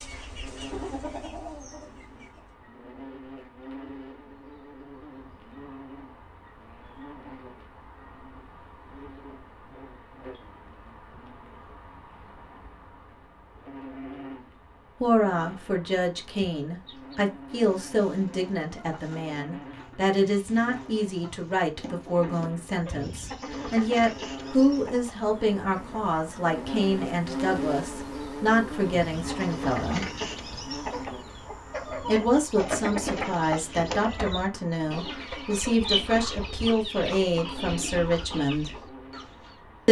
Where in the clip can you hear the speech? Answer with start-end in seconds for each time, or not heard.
15.0-30.1, 32.0-38.8.